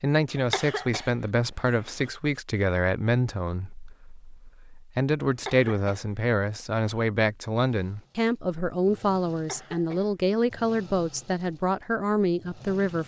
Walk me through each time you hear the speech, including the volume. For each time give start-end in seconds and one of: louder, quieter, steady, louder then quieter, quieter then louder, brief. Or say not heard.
0.0-13.0 steady.